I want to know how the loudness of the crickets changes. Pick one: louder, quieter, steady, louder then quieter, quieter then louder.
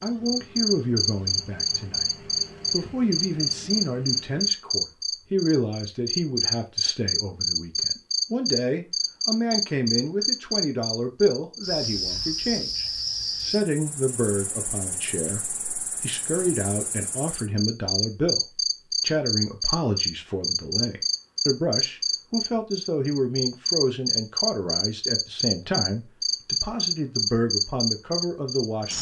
quieter then louder.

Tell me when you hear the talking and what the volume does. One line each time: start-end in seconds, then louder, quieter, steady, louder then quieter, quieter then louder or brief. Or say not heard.
0.0-28.9 steady.